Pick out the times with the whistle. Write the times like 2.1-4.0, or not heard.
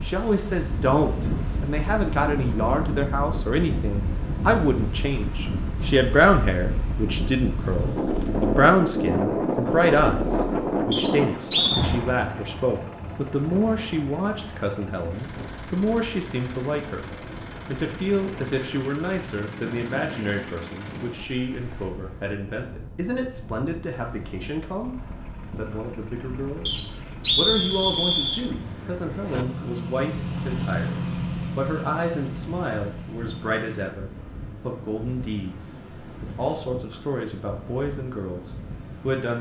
10.9-11.9, 26.6-28.4.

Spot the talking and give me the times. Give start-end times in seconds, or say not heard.
0.0-26.6, 27.4-39.3.